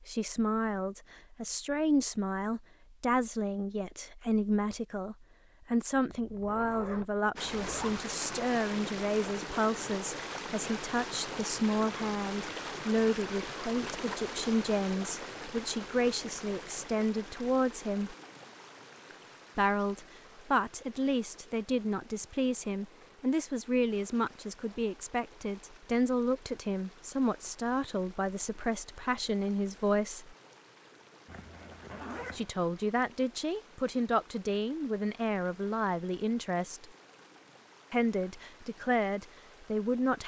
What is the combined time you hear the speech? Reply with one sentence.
The speech can be heard for 36 seconds in total.